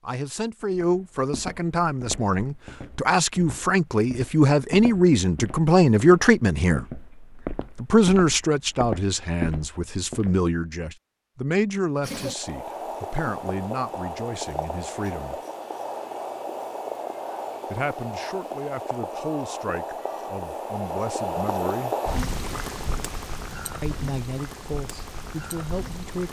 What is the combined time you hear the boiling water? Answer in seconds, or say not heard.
14 s.